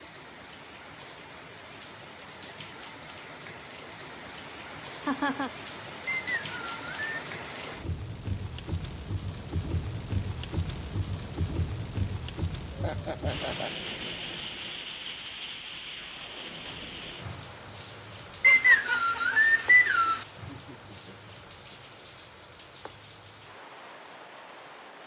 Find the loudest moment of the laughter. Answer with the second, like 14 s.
5 s.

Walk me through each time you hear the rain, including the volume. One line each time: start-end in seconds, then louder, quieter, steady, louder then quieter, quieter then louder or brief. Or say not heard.
0.0-25.0 louder then quieter.